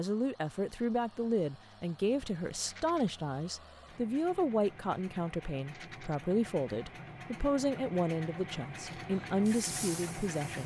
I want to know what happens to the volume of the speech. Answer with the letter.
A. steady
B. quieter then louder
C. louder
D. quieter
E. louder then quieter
A.